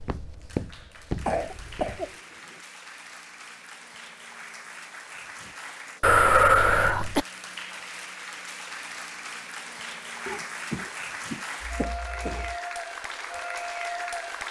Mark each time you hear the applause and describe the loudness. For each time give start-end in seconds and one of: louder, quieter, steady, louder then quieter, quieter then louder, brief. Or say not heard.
0.0-14.4 louder.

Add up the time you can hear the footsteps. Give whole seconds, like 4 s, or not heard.
2 s.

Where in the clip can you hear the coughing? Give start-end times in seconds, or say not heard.
1.2-2.6, 6.0-7.2, 10.2-12.6.